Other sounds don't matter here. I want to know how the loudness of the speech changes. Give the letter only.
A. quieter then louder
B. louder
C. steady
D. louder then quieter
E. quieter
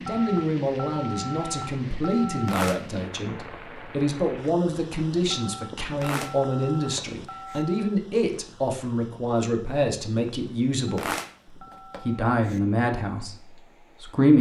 C.